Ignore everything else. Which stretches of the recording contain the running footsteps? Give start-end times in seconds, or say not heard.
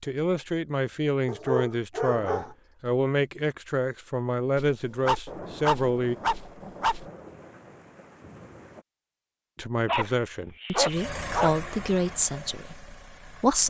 not heard.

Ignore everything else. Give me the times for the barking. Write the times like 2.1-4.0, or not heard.
1.2-2.5, 4.5-7.0, 9.8-11.6.